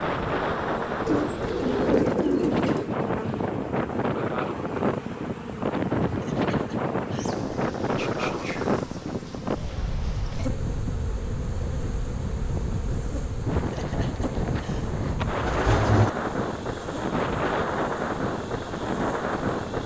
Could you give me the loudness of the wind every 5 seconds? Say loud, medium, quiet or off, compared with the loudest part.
loud, loud, medium, loud.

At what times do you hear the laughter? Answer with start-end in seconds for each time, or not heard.
5.9-7.3, 13.4-15.2.